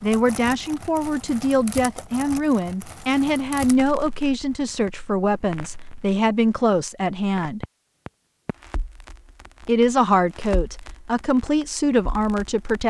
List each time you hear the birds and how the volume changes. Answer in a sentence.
You can't hear the birds here.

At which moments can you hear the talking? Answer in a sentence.
You can hear the talking from 0.0 to 7.7 s and from 9.7 to 12.8 s.